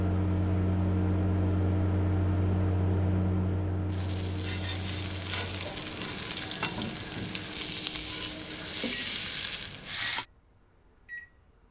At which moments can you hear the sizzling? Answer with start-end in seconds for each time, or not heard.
3.9-10.2.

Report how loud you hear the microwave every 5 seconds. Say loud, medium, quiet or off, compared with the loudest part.
loud, quiet, quiet.